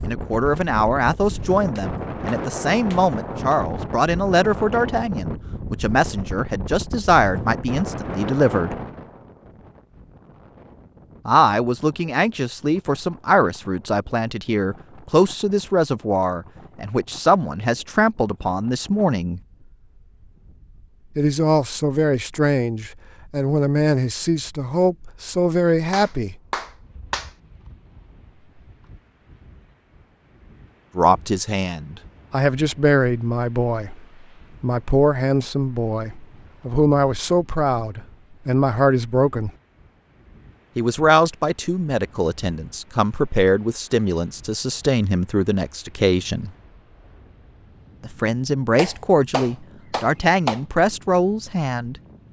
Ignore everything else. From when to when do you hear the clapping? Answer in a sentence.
The clapping can be heard from 1.8 to 3.6 s, from 25.9 to 27.3 s and from 48.8 to 50.6 s.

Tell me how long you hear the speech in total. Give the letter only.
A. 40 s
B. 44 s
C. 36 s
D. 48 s
A.